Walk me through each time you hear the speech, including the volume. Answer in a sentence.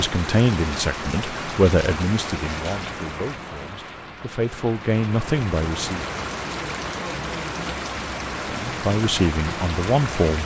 You can hear the speech from 0.0 to 6.0 s, getting quieter then louder; and briefly from 8.4 to 10.4 s.